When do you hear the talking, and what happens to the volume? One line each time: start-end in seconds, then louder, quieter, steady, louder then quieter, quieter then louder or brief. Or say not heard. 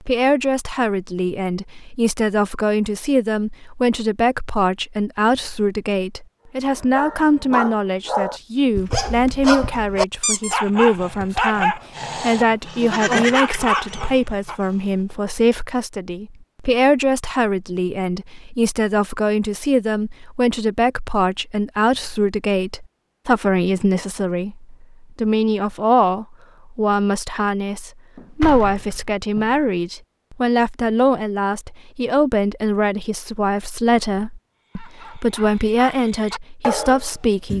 0.1-37.5 steady.